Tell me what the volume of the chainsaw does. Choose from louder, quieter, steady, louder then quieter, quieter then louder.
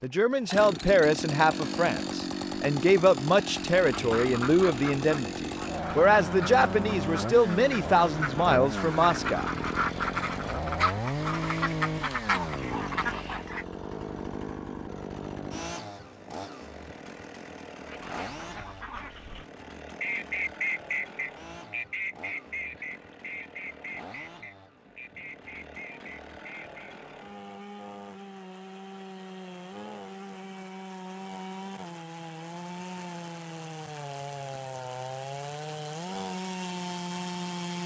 quieter then louder.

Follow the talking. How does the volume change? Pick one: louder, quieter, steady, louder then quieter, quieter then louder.
steady.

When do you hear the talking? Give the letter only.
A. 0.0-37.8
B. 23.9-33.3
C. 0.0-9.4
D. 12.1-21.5
C.